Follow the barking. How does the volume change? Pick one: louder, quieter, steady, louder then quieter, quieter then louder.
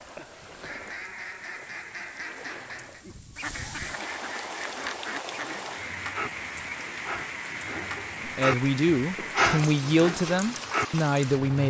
louder then quieter.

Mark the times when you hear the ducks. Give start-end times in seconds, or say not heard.
0.0-5.8.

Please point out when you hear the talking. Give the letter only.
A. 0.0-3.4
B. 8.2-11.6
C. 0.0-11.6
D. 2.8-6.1
B.